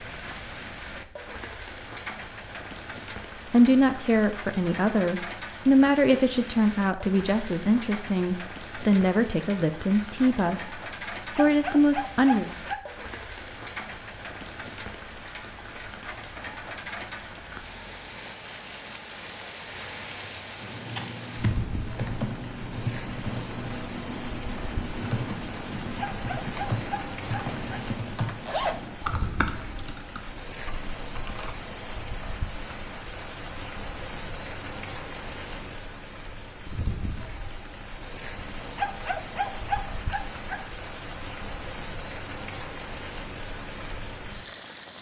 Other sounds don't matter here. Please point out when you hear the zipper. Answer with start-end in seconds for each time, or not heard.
28.4-29.1.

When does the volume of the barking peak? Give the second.
40 s.